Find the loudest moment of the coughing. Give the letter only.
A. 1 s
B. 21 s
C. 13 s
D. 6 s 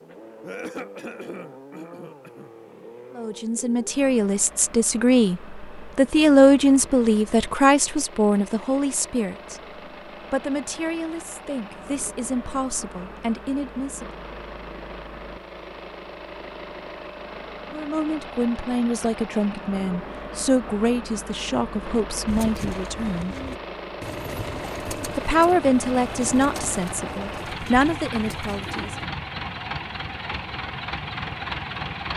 A.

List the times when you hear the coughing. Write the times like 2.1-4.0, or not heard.
0.4-2.5.